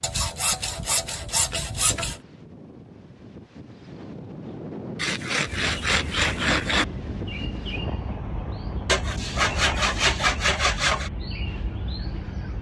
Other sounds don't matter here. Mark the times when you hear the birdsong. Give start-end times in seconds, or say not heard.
5.5-12.5.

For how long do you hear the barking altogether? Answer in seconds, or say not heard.
not heard.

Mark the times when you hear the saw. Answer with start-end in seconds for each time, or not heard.
0.0-2.2, 5.0-6.8, 8.8-11.1.